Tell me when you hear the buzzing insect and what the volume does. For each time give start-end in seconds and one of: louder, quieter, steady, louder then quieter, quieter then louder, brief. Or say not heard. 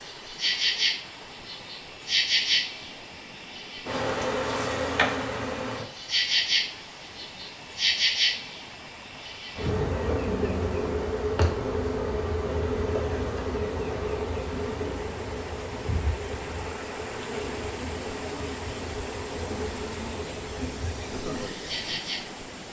0.0-22.4 quieter.